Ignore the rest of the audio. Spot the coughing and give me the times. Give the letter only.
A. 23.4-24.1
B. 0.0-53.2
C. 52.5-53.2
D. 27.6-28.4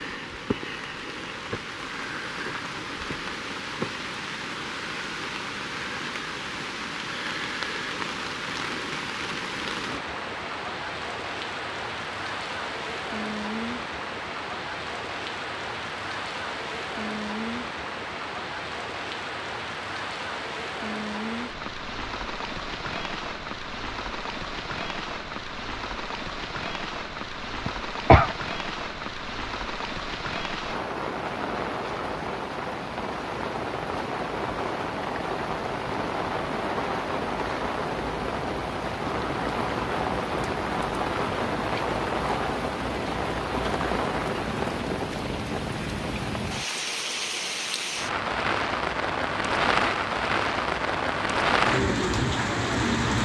D.